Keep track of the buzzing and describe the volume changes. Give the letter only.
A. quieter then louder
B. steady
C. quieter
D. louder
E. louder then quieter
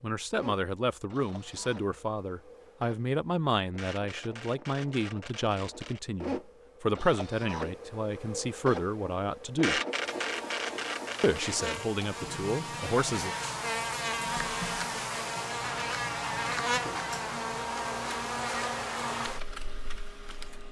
D.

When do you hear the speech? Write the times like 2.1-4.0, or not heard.
0.0-9.8, 11.2-13.3.